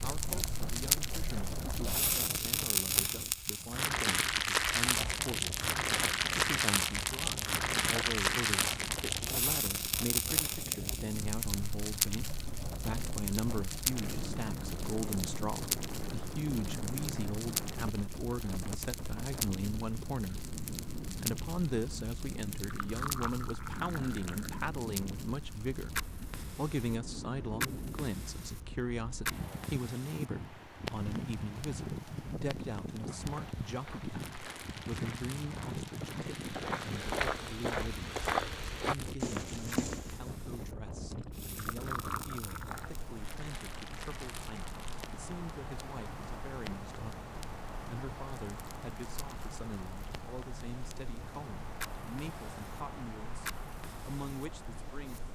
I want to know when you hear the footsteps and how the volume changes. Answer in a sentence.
You can hear the footsteps from 33.0 to 40.2 s, getting louder.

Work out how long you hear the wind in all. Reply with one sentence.
The wind can be heard for 55 seconds in total.